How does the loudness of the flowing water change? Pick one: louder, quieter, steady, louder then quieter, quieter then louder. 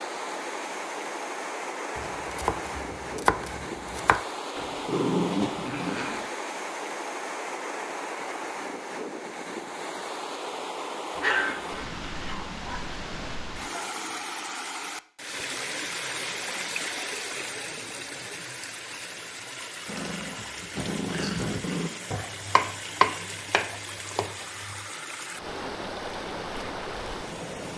steady.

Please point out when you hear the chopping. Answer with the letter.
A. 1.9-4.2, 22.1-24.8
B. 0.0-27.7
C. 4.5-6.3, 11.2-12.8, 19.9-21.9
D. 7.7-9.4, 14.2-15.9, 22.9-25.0
A.